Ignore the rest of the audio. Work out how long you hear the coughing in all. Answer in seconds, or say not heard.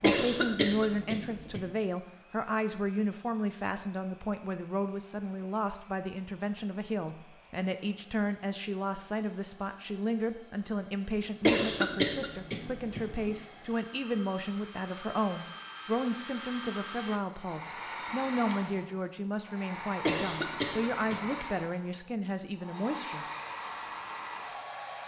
5 s.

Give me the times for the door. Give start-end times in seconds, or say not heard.
not heard.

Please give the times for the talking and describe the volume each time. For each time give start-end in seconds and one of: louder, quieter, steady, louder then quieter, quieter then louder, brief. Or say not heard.
0.0-23.2 steady.